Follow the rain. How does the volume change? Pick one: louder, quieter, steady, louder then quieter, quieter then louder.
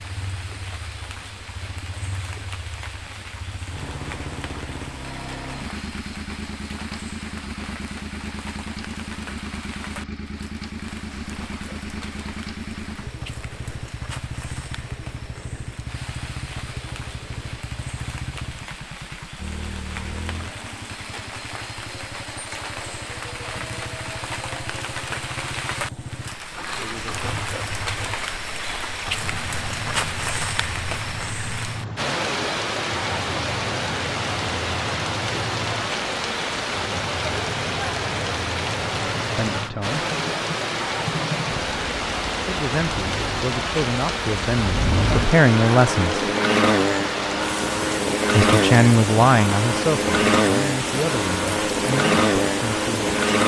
louder.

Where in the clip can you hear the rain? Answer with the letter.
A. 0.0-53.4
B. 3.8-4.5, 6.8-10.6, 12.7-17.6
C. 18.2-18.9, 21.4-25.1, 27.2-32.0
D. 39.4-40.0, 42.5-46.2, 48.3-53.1
A.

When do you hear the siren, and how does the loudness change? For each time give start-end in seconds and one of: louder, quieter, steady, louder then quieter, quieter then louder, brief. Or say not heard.
not heard.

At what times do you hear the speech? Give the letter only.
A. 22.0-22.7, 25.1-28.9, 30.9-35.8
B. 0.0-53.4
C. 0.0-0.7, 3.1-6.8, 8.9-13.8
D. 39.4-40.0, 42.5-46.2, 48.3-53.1
D.